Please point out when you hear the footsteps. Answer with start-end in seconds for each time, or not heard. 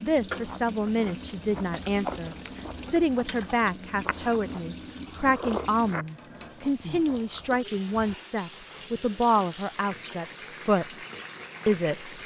not heard.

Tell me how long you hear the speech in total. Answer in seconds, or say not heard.
11 s.